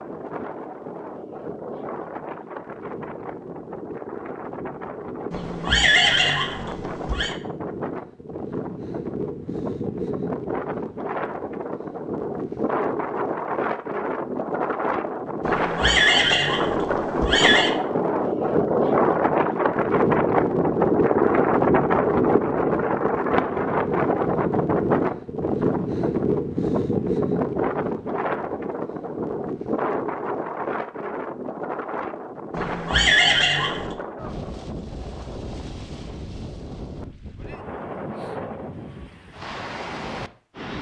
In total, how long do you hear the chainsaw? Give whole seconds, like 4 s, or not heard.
not heard.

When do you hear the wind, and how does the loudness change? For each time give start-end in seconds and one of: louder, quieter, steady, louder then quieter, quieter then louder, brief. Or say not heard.
0.0-40.7 louder then quieter.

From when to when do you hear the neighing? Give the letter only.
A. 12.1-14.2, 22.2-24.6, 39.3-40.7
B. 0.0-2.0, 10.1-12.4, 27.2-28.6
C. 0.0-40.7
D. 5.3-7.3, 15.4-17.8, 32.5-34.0
D.